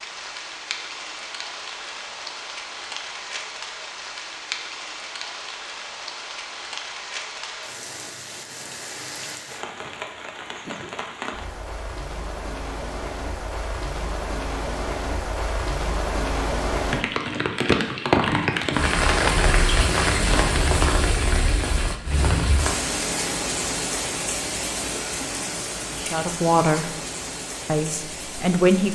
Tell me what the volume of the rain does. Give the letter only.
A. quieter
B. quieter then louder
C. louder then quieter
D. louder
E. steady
C.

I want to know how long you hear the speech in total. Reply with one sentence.
You can hear the speech for 2 seconds altogether.